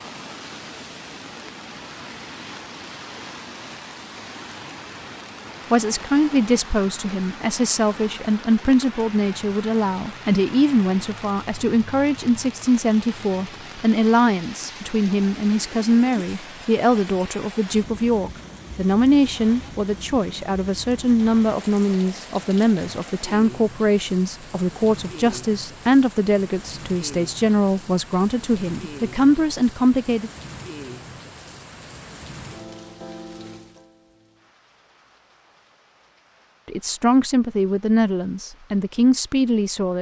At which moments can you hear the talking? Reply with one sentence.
You can hear the talking from 5.7 to 30.3 s and from 36.6 to 39.9 s.